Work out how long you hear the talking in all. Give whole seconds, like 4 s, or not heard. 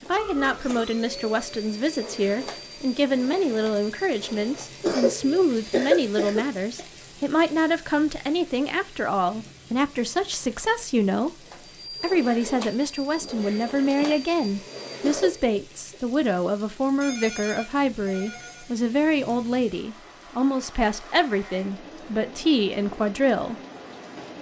23 s.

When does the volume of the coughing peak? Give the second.
6 s.